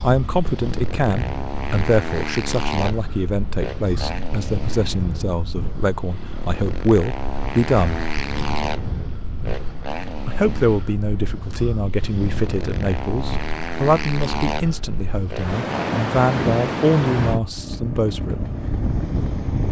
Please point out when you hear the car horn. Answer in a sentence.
The car horn can't be heard in this clip.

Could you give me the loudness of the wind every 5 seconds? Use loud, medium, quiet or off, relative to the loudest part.
medium, medium, medium, loud.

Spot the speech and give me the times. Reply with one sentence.
The speech can be heard from 0.0 to 8.0 s and from 10.2 to 18.4 s.